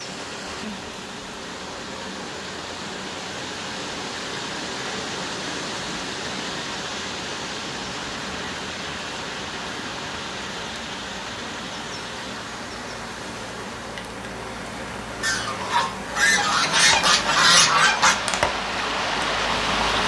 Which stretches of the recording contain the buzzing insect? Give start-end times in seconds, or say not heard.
0.0-20.0.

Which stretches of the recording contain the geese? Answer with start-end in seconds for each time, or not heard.
15.2-18.1.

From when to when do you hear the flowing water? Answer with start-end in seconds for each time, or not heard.
0.0-20.0.